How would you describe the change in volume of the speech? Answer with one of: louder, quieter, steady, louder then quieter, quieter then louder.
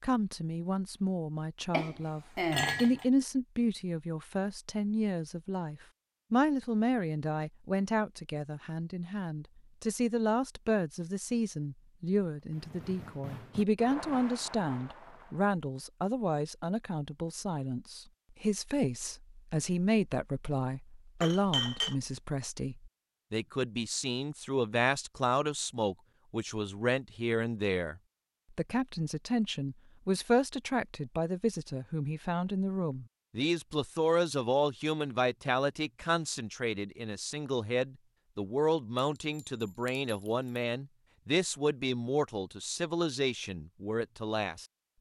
steady.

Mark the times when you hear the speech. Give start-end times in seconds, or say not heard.
0.0-44.6.